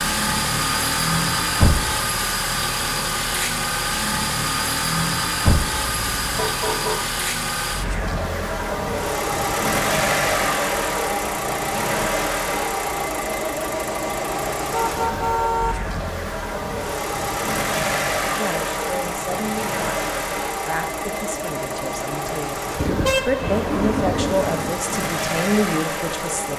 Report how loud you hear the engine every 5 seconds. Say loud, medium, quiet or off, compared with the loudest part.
loud, loud, loud, loud, medium, loud.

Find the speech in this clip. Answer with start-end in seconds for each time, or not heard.
18.2-26.5.